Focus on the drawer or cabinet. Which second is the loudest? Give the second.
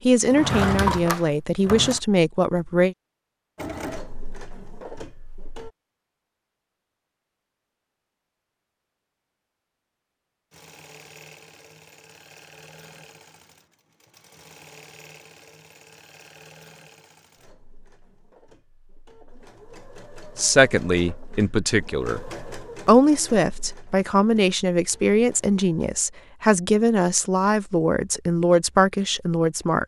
1 s.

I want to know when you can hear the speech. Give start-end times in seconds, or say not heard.
0.1-3.0, 20.4-22.2, 22.9-29.8.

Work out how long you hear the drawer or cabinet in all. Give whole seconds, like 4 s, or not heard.
2 s.